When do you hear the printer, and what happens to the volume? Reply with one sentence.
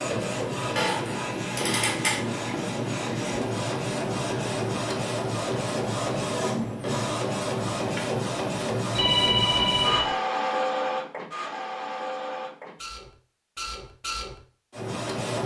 The printer can be heard from 0.0 to 15.4 s, getting quieter.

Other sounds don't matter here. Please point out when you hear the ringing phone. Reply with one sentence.
The ringing phone can be heard from 8.9 to 10.2 s.